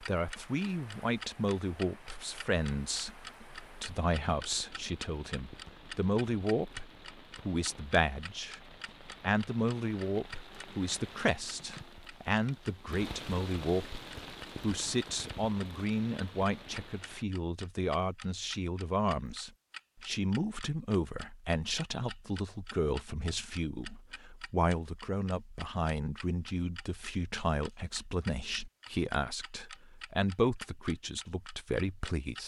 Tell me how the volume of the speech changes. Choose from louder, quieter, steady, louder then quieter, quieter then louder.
steady.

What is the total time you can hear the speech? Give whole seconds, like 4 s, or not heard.
32 s.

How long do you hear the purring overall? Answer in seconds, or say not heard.
not heard.